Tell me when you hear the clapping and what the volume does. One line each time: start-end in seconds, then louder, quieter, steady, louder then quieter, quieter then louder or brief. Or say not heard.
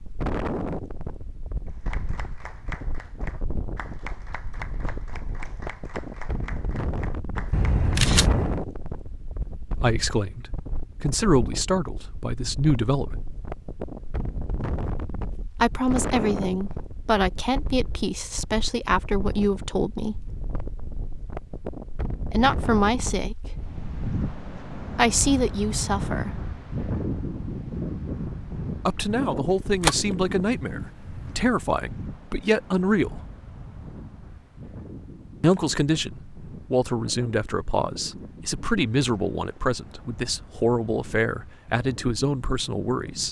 1.6-8.0 steady.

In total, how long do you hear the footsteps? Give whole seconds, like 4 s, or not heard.
not heard.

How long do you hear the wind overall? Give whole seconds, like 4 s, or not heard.
43 s.